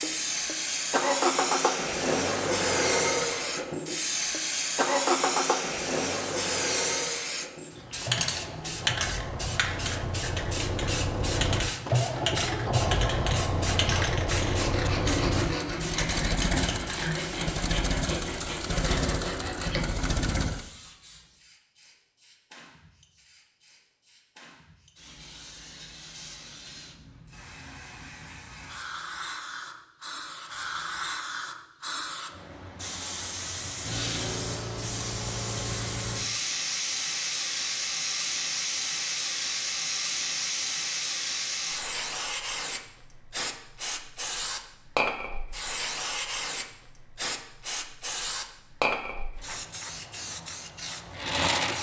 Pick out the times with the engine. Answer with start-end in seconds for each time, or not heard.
0.0-20.7.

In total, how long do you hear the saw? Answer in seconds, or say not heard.
6 s.